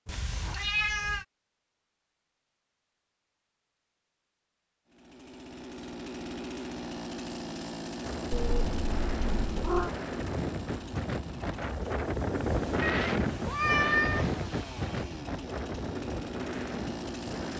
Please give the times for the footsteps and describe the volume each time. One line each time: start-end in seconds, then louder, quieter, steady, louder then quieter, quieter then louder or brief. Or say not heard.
not heard.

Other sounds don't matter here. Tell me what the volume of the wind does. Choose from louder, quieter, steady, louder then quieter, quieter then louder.
louder then quieter.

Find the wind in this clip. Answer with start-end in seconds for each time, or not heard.
8.0-17.5.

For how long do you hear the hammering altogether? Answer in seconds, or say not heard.
not heard.